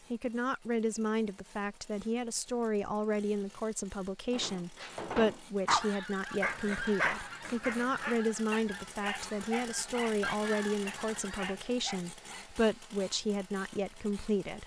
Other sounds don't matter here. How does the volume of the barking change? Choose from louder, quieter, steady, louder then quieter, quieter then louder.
quieter.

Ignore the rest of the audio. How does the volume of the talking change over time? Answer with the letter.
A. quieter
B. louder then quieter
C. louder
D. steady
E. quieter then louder
D.